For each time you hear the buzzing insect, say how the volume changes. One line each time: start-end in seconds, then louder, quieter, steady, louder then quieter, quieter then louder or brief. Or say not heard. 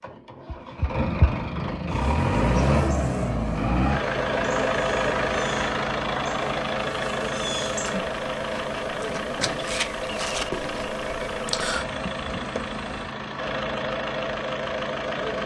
1.9-13.1 louder.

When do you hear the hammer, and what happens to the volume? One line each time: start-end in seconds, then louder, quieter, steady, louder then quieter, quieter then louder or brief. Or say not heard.
not heard.